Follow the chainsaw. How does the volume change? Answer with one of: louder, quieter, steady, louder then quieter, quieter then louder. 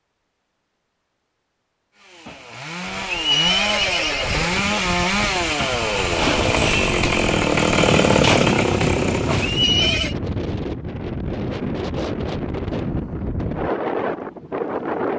louder.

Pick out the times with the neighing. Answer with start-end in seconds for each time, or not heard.
3.0-4.8, 9.4-10.2.